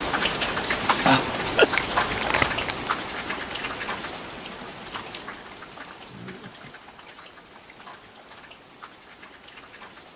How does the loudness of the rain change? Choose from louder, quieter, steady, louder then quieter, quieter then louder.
quieter.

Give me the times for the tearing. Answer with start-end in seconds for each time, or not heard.
1.8-2.9.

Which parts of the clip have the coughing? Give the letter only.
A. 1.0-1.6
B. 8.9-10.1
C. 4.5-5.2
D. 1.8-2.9
A.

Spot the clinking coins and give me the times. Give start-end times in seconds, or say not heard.
not heard.